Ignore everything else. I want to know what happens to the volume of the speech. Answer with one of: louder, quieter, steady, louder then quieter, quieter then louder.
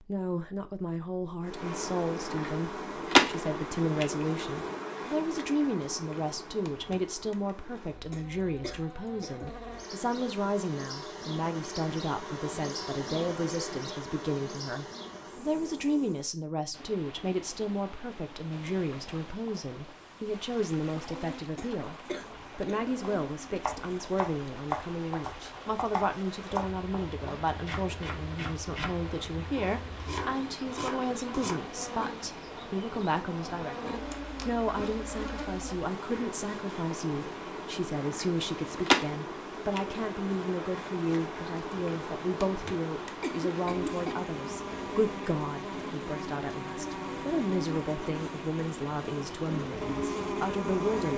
steady.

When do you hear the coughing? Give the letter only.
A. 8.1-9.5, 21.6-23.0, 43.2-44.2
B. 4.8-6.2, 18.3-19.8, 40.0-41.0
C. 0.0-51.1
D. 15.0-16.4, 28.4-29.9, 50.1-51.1
A.